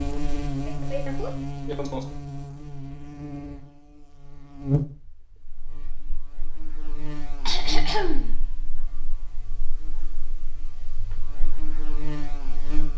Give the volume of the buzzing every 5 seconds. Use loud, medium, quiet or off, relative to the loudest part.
loud, quiet, medium.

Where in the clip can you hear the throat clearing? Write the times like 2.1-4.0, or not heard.
0.7-2.0, 7.5-8.3.